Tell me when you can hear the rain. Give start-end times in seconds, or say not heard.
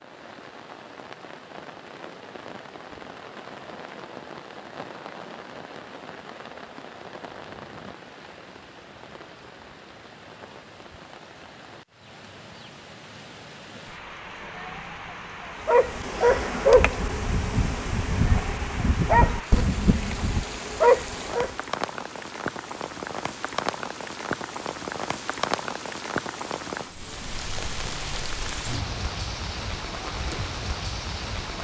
0.0-31.6.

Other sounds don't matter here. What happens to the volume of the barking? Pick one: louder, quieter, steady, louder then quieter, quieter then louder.
quieter then louder.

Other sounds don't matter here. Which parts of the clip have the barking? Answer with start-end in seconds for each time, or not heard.
15.7-21.6.